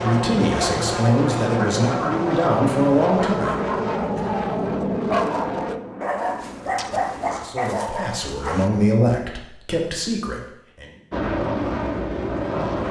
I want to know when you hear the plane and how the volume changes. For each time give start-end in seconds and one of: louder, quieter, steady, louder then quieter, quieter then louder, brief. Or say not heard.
0.0-7.4 quieter
11.1-12.8 brief.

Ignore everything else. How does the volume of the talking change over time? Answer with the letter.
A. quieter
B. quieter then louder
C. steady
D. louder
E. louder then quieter
C.